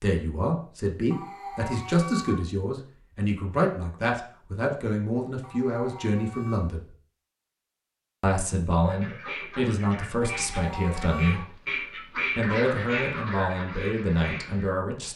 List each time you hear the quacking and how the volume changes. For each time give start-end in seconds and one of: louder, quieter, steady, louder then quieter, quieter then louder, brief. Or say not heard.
8.8-14.7 louder then quieter.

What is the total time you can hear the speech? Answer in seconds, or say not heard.
13 s.